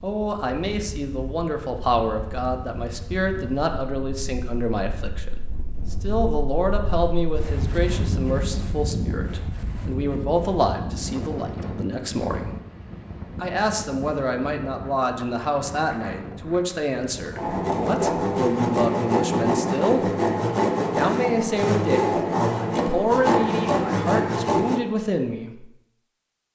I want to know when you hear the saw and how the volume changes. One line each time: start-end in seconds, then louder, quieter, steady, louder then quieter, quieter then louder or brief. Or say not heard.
17.4-24.8 steady.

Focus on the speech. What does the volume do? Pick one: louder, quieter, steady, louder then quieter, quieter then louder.
steady.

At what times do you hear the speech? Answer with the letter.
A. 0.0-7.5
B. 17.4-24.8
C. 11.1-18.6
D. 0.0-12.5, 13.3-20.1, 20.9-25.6
D.